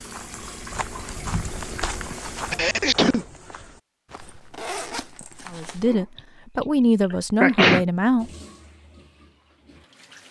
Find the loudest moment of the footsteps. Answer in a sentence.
The loudest moment of the footsteps is at 2 seconds.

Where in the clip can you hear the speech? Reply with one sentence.
The speech can be heard from 5.5 to 8.3 s.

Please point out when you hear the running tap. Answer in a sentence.
You can hear the running tap from 0.0 to 2.6 s and from 8.2 to 10.2 s.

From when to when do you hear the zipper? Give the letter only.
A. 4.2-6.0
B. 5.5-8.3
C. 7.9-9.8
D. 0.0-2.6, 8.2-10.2
A.